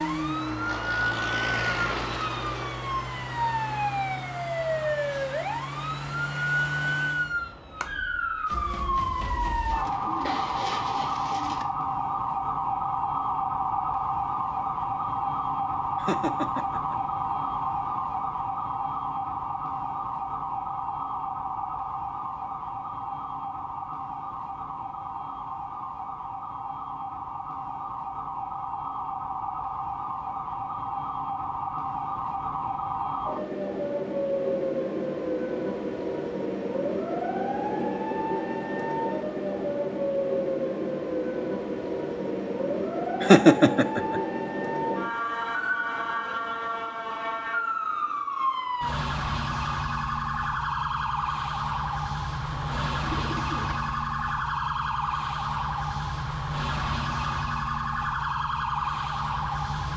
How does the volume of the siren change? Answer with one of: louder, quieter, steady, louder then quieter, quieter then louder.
steady.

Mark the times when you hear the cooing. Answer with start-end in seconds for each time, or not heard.
9.7-11.7, 52.5-54.0.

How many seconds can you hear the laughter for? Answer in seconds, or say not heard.
2 s.